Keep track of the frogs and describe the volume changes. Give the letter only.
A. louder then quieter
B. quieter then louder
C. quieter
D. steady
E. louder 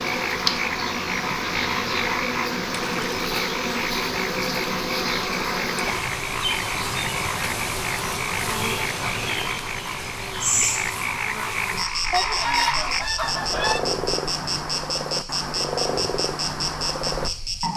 D.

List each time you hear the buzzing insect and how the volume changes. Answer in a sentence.
The buzzing insect can be heard from 0.0 to 17.7 s, at a steady volume.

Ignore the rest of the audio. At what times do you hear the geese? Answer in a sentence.
You can hear the geese from 12.1 to 13.8 s.